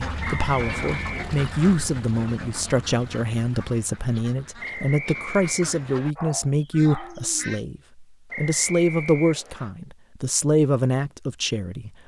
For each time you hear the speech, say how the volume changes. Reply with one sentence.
You can hear the speech from 0.1 to 12.0 s, at a steady volume.